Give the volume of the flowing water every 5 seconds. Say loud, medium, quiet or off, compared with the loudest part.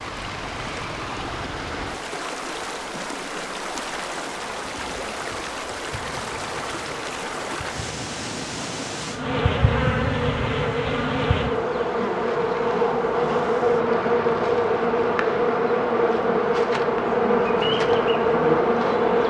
loud, loud, quiet, off.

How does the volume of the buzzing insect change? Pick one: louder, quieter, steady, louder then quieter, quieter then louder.
louder.